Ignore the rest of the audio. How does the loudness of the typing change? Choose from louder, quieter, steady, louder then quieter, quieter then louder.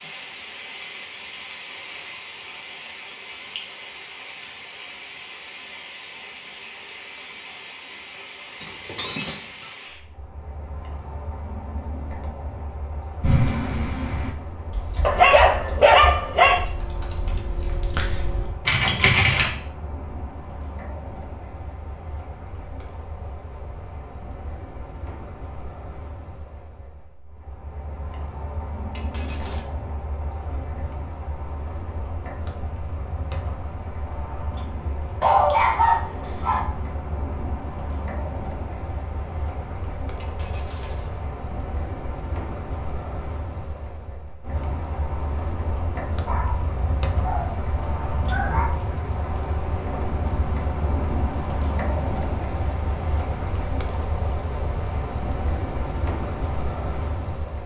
quieter then louder.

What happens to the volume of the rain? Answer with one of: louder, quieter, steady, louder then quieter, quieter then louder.
louder.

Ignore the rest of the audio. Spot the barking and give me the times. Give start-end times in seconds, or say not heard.
15.0-16.6, 35.2-36.6, 46.2-48.8.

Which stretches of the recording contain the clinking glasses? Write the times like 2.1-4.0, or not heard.
8.6-9.7, 28.9-29.6, 40.2-41.2.